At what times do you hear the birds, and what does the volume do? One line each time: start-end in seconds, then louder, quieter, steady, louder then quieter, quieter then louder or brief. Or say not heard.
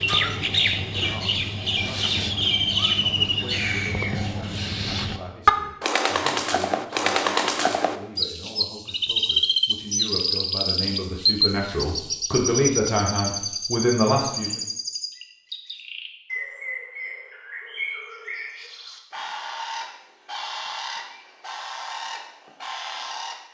0.0-23.4 quieter.